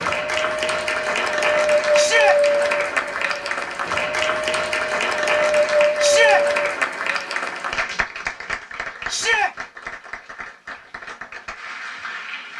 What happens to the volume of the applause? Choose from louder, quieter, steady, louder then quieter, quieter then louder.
quieter.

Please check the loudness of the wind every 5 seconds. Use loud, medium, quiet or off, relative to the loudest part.
loud, loud, off.